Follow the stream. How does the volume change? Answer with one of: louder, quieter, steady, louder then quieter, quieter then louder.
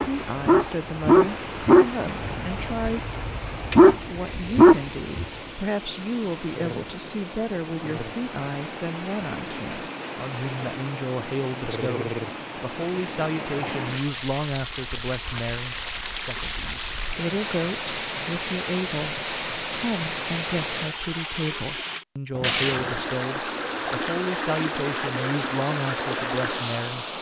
louder.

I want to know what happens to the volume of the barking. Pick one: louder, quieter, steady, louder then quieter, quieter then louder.
quieter then louder.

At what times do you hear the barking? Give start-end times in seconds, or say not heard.
0.0-5.2.